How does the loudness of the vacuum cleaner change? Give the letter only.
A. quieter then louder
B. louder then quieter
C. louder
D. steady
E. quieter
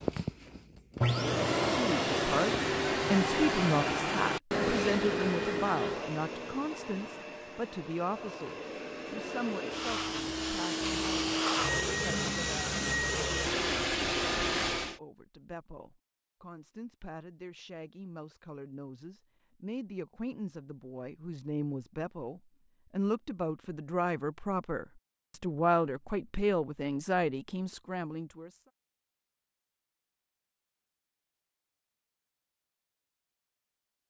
A.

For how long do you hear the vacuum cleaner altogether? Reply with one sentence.
You can hear the vacuum cleaner for 15 seconds altogether.